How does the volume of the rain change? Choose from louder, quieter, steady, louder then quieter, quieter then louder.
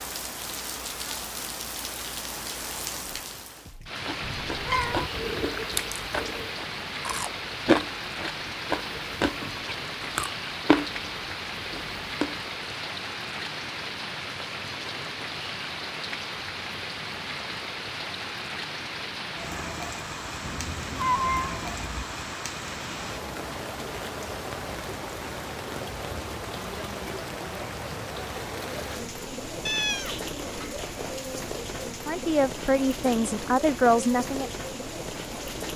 steady.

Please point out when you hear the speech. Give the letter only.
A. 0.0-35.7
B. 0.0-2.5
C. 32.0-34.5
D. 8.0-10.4
C.